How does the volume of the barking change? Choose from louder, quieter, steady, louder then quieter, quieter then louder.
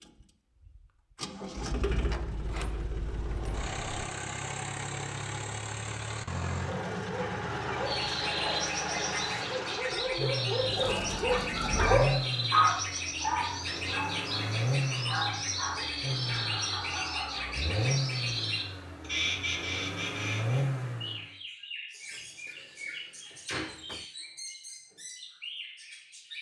louder then quieter.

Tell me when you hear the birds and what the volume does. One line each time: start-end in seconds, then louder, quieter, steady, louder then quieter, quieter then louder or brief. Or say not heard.
7.8-26.3 quieter.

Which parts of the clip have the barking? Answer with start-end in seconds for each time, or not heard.
6.6-17.6.